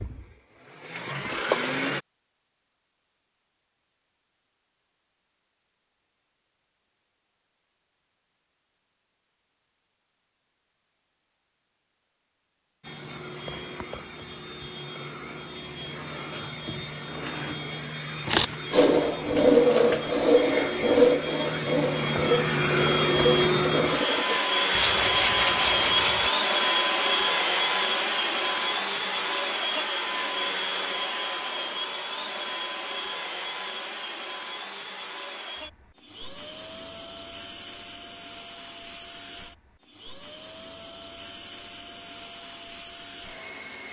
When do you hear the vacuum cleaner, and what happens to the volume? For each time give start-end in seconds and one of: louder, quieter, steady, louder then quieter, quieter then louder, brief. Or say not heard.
0.0-2.0 brief
12.8-43.8 louder then quieter.